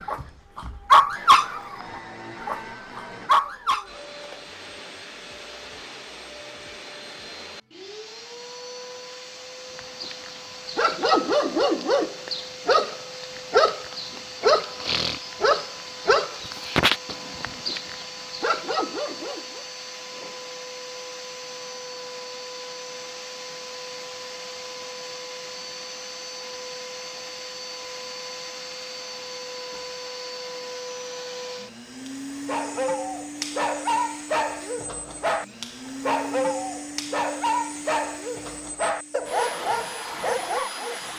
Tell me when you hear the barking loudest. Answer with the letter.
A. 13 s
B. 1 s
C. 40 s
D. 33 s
B.